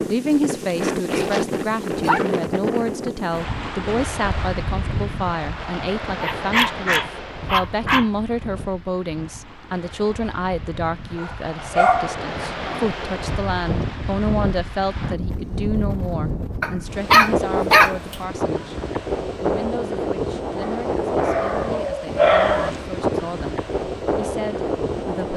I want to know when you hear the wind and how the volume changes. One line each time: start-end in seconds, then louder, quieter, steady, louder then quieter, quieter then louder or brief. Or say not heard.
0.0-25.3 quieter then louder.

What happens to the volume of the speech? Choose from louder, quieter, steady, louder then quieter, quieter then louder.
quieter.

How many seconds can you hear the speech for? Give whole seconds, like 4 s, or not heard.
25 s.